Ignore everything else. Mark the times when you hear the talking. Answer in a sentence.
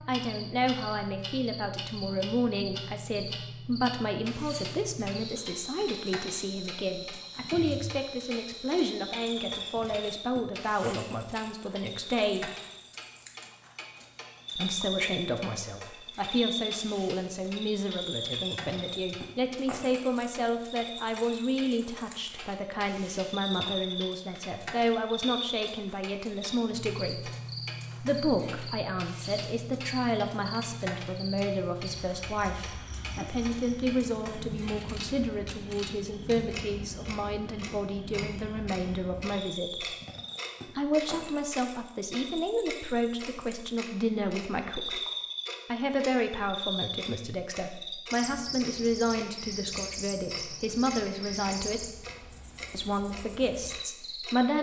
The talking can be heard from 0.1 to 12.5 s, from 14.6 to 27.3 s, from 28.0 to 40.0 s, from 40.8 to 45.0 s, from 45.6 to 51.9 s and from 52.7 to 54.5 s.